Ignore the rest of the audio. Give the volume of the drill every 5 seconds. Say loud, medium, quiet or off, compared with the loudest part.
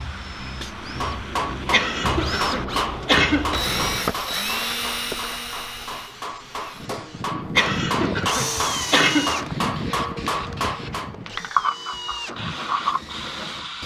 loud, loud, medium.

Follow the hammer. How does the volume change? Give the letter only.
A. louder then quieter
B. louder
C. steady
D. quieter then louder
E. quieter
D.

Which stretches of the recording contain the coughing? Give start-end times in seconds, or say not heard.
1.7-3.5, 7.5-9.3.